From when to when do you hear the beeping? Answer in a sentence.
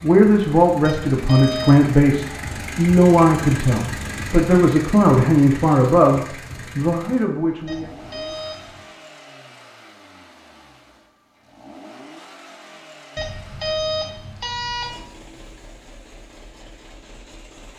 You can hear the beeping from 0.8 to 1.9 s, from 7.7 to 8.8 s and from 13.2 to 15.0 s.